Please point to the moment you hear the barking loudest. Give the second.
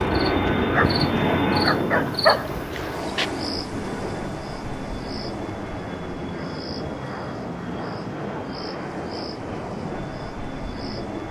2 s.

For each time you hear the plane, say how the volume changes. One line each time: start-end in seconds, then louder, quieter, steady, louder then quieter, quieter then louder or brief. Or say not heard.
0.0-11.2 quieter.